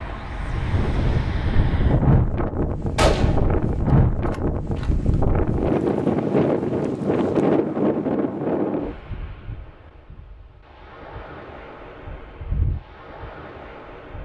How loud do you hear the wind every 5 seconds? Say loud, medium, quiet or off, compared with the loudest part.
loud, loud, quiet.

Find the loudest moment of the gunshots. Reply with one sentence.
The loudest moment of the gunshots is at 3 seconds.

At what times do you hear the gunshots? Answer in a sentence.
The gunshots can be heard from 3.0 to 3.6 s and from 4.3 to 4.9 s.